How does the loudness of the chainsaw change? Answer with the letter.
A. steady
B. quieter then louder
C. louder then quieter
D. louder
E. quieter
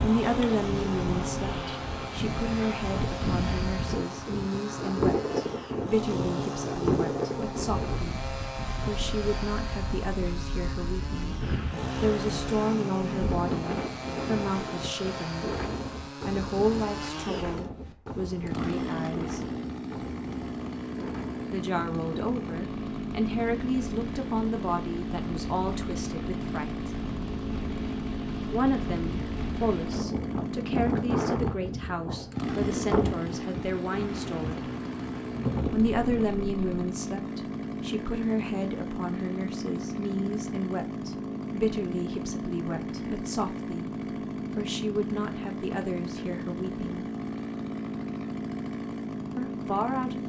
A.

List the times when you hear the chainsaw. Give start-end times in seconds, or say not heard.
0.0-50.2.